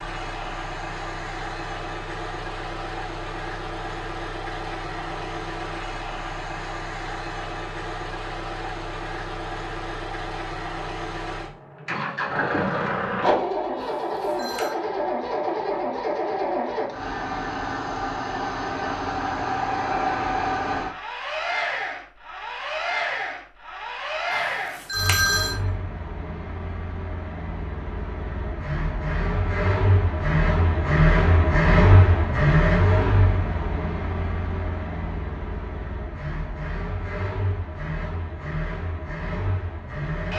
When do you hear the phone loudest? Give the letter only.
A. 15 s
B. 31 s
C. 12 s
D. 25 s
D.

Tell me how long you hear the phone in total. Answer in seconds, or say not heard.
2 s.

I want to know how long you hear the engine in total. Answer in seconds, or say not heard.
40 s.